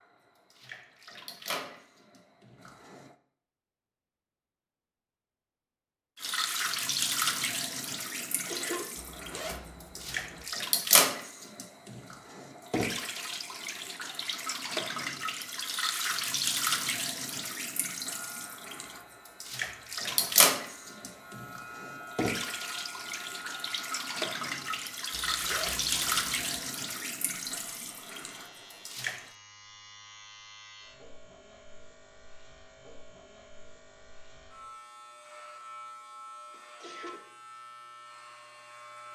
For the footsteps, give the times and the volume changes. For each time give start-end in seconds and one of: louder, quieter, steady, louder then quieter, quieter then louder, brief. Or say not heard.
not heard.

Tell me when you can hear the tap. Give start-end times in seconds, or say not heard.
0.0-3.1, 6.2-29.3.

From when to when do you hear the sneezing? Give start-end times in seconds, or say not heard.
8.2-8.8, 36.5-37.2.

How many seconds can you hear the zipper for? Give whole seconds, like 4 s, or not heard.
3 s.